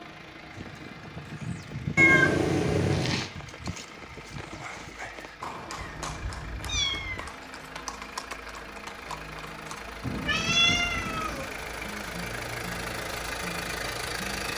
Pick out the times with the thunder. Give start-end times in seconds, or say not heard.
10.0-11.4.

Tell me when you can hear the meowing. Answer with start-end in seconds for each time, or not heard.
1.9-3.3, 5.8-7.3, 10.2-11.5.